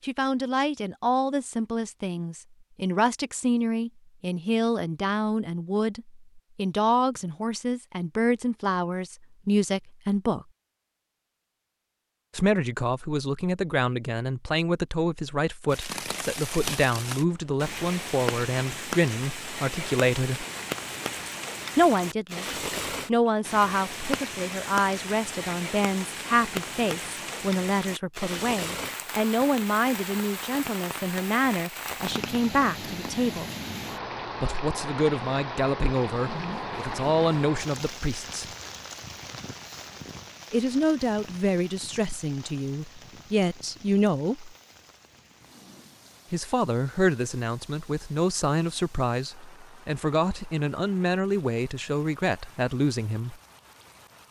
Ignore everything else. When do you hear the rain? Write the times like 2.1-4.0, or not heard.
15.7-54.2.